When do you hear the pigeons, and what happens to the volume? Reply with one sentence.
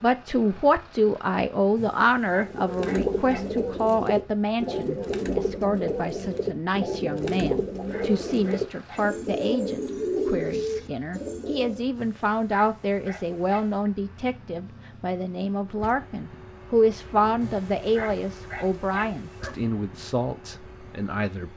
You can hear the pigeons from 2.4 to 11.8 s, at a steady volume.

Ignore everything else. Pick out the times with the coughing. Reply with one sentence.
The coughing can't be heard in this clip.